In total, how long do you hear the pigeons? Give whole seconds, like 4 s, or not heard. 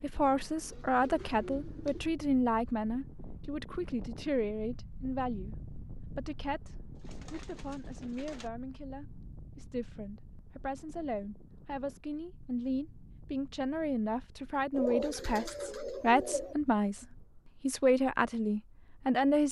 5 s.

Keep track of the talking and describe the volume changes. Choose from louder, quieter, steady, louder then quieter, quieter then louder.
quieter then louder.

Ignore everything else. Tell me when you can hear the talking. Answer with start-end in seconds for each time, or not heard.
0.0-19.4.